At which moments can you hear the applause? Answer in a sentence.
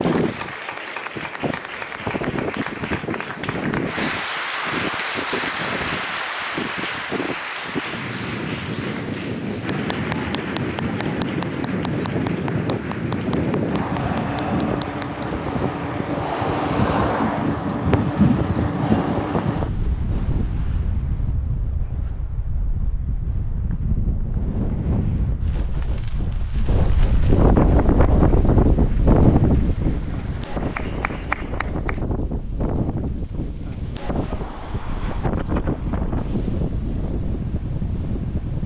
You can hear the applause from 0.0 to 16.1 s and from 27.6 to 32.0 s.